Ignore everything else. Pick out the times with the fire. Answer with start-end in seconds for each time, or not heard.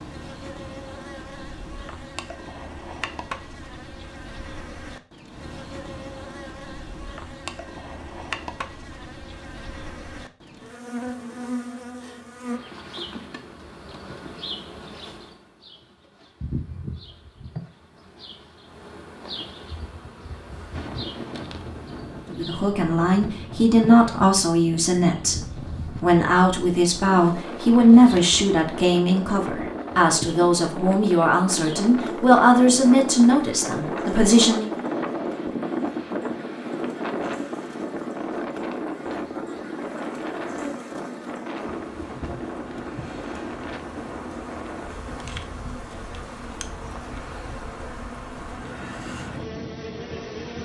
not heard.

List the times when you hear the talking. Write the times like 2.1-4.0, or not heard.
22.3-34.7.